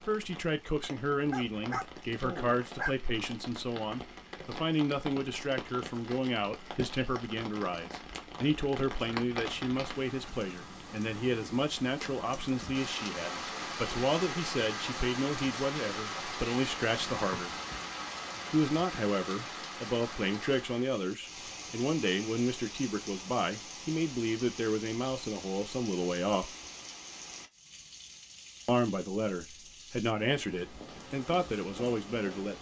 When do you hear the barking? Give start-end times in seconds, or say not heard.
1.3-3.0.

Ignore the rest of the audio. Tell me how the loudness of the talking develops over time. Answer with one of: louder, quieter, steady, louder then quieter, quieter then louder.
steady.